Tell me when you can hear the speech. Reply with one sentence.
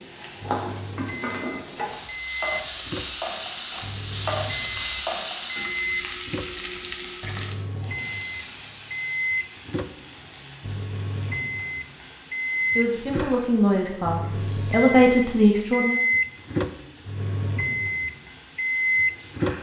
You can hear the speech from 12.8 to 15.9 s.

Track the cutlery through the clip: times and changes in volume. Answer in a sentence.
The cutlery can't be heard in this clip.